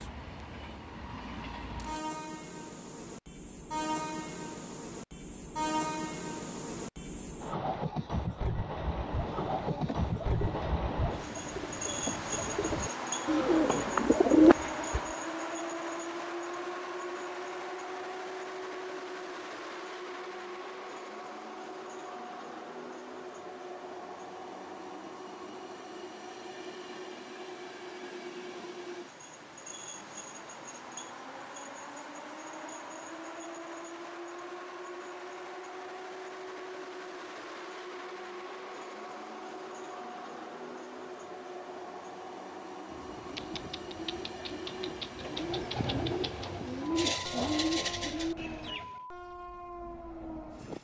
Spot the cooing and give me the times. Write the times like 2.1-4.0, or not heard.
9.1-15.0, 42.9-49.0.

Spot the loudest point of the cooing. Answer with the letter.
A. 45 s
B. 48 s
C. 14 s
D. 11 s
C.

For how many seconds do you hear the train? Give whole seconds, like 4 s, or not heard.
51 s.